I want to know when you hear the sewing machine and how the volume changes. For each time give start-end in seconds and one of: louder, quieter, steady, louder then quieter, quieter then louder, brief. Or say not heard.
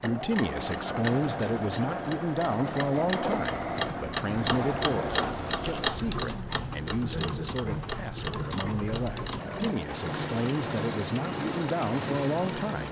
0.0-12.8 steady.